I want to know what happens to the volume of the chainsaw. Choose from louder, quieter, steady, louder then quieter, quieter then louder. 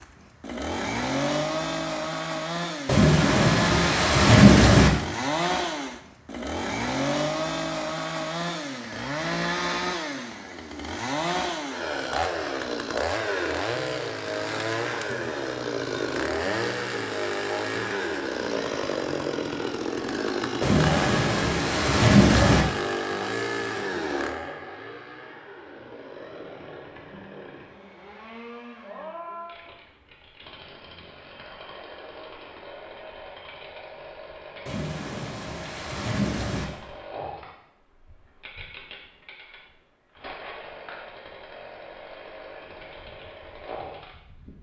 quieter.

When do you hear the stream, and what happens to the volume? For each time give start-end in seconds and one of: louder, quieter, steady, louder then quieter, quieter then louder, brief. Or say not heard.
not heard.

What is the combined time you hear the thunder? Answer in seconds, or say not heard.
6 s.